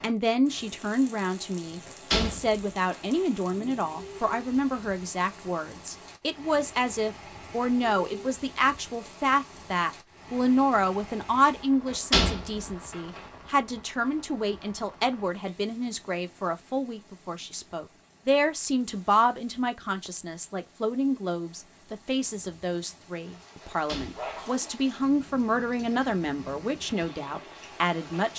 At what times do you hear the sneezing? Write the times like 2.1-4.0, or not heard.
24.1-24.8.